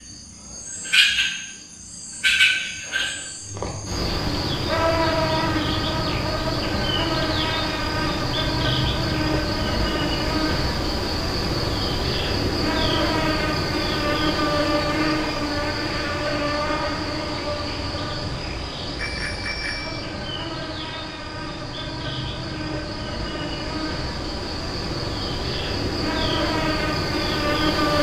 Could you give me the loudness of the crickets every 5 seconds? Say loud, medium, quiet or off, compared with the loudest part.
loud, loud, loud, loud, medium, loud.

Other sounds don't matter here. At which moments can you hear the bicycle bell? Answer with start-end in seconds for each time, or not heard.
18.9-20.1.